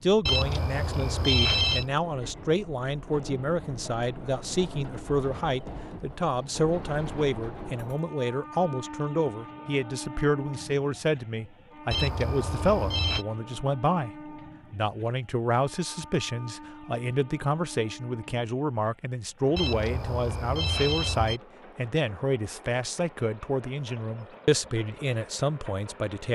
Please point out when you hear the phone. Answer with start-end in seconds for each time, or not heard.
0.2-1.9, 11.9-13.2, 19.6-21.4.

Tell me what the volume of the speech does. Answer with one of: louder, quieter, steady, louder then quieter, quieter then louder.
steady.